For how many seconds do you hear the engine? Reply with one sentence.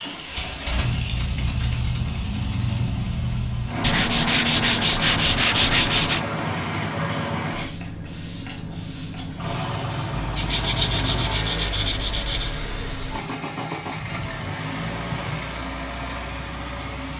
The engine can be heard for 17 seconds in total.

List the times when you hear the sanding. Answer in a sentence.
The sanding can be heard from 3.8 to 6.2 s and from 10.2 to 12.6 s.